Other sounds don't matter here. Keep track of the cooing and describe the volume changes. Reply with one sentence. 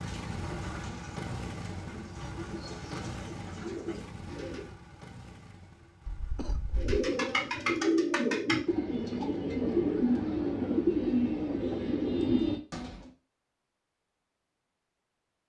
The loudness of the cooing goes up.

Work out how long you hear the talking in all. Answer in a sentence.
The talking can't be heard in this clip.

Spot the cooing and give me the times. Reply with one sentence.
The cooing can be heard from 0.0 to 4.7 s and from 6.8 to 13.1 s.